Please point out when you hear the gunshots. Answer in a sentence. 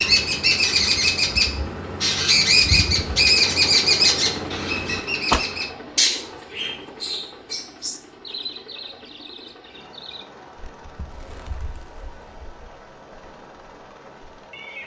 You can hear the gunshots from 5.3 to 6.4 s.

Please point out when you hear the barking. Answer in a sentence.
You can't hear the barking here.